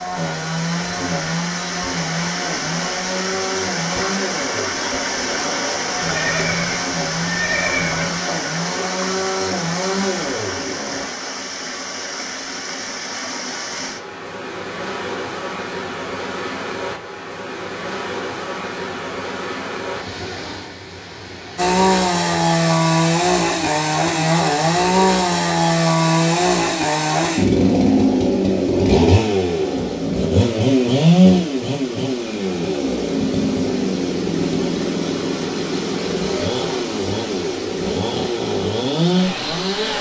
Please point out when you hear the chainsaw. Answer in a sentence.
You can hear the chainsaw from 0.0 to 11.1 s and from 21.6 to 39.9 s.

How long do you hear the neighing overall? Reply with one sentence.
The neighing can be heard for 2 seconds in total.